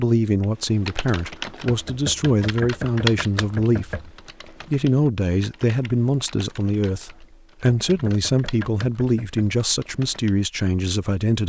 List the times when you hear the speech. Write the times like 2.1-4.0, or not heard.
0.0-11.4.